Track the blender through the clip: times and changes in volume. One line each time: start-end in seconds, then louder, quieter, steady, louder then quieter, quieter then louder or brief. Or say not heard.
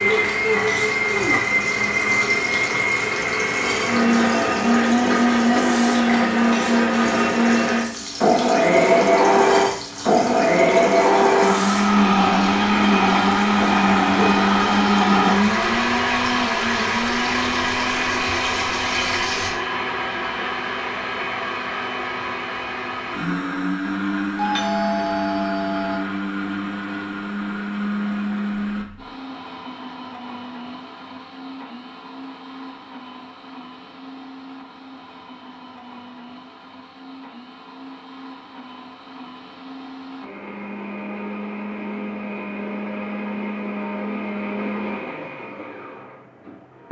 0.0-46.8 quieter.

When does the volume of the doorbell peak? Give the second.
25 s.